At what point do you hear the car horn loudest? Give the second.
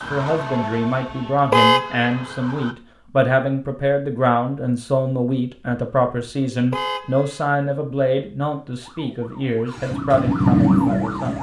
2 s.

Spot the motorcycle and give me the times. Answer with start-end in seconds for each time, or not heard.
9.7-11.3.